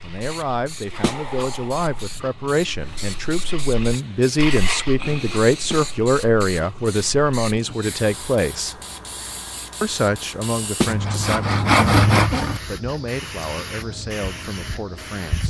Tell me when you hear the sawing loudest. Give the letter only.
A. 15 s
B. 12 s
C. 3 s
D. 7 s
B.